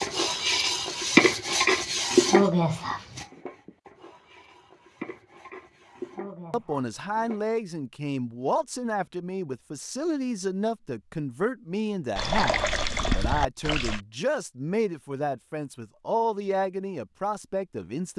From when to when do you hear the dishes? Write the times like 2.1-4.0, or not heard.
0.0-7.4.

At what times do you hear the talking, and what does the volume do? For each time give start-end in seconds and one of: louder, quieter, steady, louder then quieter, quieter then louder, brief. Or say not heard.
6.5-18.1 steady.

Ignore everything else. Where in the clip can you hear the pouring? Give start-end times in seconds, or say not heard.
12.2-14.0.